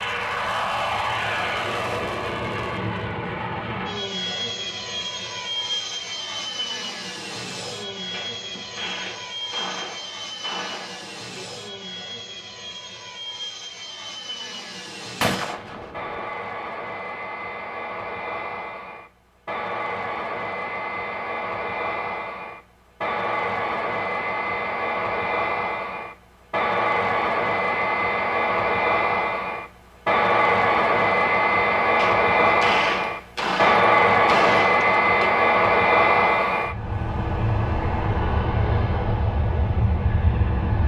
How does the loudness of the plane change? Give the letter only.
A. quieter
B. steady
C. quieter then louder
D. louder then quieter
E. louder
C.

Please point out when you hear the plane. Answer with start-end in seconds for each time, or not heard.
0.0-40.8.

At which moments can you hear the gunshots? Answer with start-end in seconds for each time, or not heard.
8.1-11.2, 15.2-16.3, 31.9-35.3.